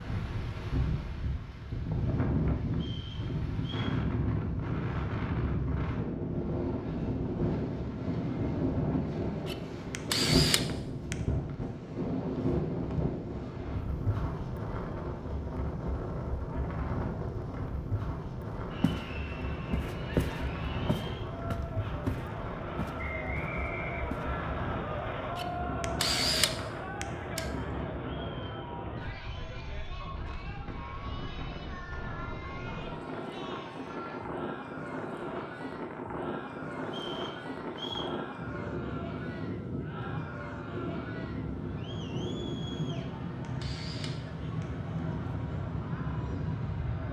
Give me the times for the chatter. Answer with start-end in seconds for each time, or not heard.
18.7-47.0.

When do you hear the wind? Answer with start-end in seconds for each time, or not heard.
0.0-47.0.